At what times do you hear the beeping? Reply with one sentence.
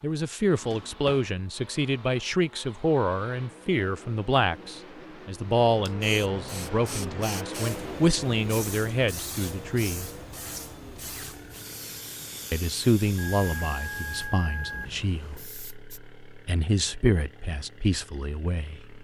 The beeping can be heard from 13.2 to 15.0 s.